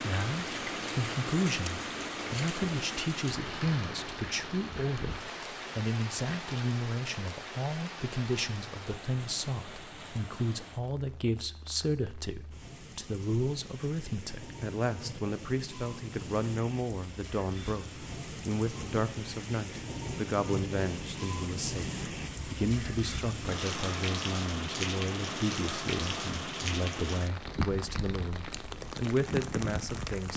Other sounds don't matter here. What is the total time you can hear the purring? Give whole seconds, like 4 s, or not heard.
not heard.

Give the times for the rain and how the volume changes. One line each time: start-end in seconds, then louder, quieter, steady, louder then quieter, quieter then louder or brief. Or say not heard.
0.0-30.3 quieter then louder.